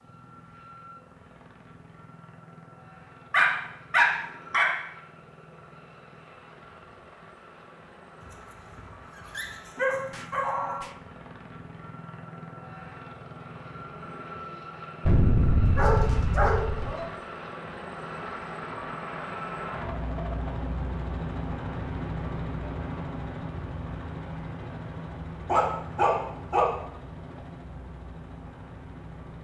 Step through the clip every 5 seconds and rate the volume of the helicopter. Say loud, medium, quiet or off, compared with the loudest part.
quiet, quiet, medium, loud, loud, medium.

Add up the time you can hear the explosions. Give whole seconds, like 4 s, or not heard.
3 s.